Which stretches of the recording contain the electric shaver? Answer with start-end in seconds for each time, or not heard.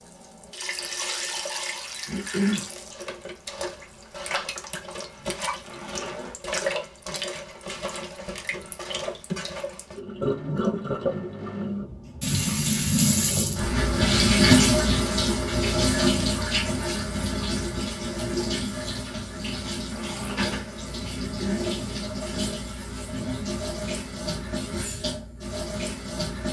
not heard.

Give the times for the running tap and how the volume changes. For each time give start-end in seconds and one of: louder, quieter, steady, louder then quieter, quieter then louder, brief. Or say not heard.
0.0-26.4 louder then quieter.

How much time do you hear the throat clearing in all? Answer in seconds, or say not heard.
2 s.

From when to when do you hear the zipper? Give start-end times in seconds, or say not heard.
5.2-6.4, 19.4-20.6.